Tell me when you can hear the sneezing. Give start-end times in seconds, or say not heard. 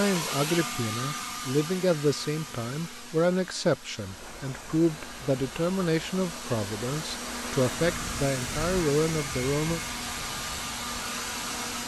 not heard.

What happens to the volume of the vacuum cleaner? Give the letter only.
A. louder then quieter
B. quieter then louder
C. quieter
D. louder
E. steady
B.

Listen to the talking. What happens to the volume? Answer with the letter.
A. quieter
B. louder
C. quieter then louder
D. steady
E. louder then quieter
D.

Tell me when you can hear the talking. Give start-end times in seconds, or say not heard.
0.0-9.8.